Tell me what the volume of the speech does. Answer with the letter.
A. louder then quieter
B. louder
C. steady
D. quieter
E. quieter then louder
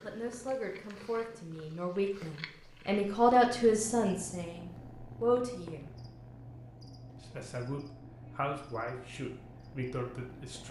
A.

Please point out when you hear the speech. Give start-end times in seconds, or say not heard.
0.0-5.9, 7.2-10.6.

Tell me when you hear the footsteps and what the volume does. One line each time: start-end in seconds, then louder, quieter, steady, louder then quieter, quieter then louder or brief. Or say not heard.
not heard.